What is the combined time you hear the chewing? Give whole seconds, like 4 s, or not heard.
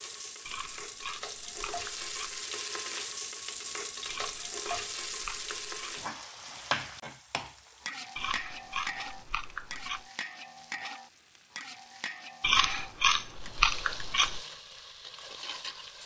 8 s.